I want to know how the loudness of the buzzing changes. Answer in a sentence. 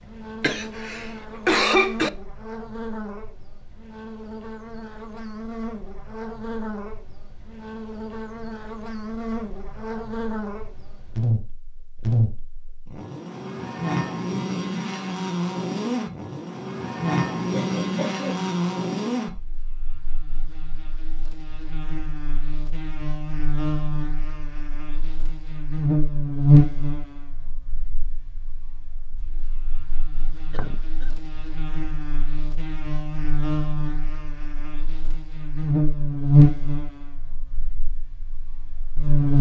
The volume of the buzzing goes up.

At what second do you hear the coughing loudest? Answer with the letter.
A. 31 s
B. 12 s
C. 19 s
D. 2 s
D.